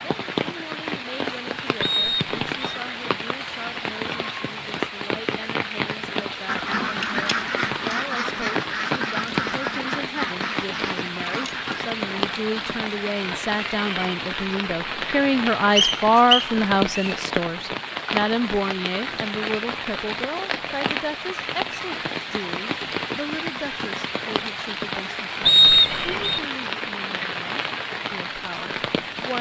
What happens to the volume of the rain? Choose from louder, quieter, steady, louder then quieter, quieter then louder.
steady.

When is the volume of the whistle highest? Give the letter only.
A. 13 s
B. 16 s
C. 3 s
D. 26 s
D.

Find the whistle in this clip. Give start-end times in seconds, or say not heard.
1.8-2.8, 15.8-17.1, 25.4-26.4.